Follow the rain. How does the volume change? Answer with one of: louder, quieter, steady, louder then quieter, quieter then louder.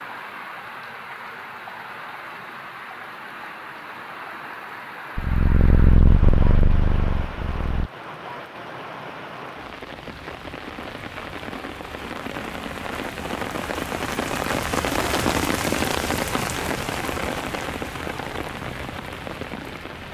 louder.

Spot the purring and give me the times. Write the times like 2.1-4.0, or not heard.
5.2-7.9.